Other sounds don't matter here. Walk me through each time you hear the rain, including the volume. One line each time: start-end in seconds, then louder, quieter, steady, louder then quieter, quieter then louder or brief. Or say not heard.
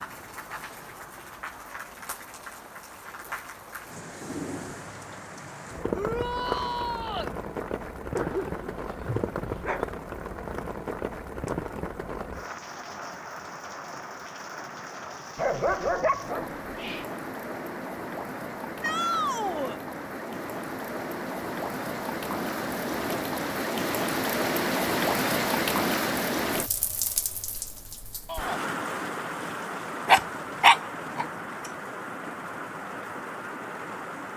0.0-34.3 louder then quieter.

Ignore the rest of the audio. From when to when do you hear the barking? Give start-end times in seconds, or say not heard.
8.2-9.9, 15.3-17.1, 30.1-31.2.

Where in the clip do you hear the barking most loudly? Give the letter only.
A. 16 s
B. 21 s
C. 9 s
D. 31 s
D.